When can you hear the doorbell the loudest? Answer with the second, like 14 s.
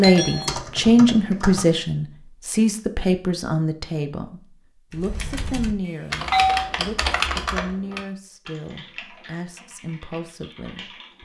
6 s.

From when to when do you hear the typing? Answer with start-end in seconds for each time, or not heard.
0.0-1.7, 4.9-11.2.